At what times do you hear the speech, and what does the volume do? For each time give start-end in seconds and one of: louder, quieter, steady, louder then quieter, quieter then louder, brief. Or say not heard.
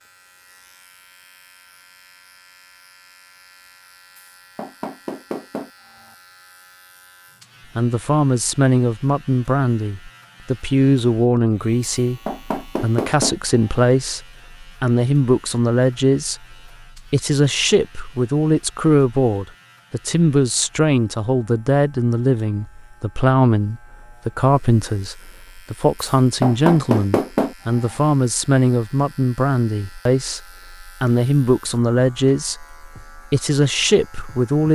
7.8-34.7 steady.